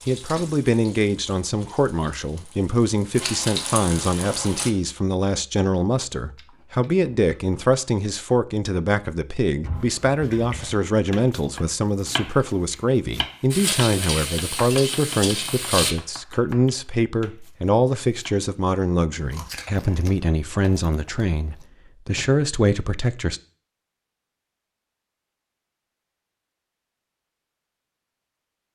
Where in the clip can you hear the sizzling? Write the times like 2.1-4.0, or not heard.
0.0-4.7, 13.5-15.9.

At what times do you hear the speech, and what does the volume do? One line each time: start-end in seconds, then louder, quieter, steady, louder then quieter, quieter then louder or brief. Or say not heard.
0.1-23.4 steady.